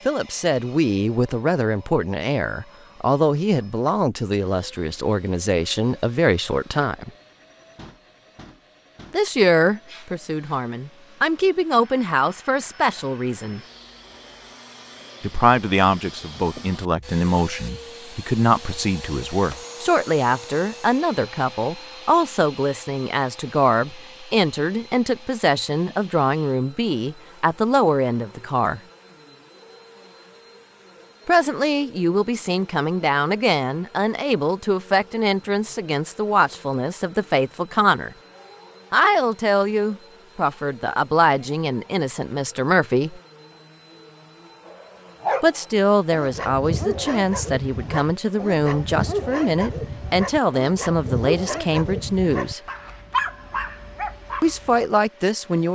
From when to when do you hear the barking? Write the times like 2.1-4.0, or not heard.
44.6-54.9.